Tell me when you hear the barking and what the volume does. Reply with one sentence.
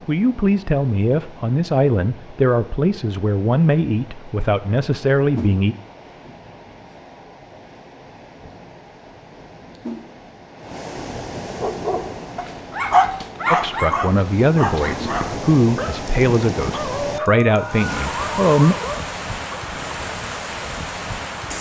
You can hear the barking from 11.6 to 19.6 s, getting quieter.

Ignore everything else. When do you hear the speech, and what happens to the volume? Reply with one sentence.
You can hear the speech from 0.1 to 5.8 s, at a steady volume; and from 13.5 to 18.8 s, at a steady volume.